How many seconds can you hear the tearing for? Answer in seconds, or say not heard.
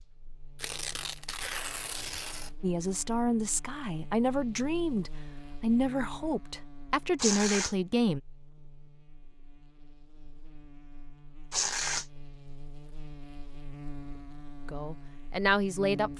3 s.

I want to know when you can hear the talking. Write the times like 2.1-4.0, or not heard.
2.6-8.2, 14.7-16.1.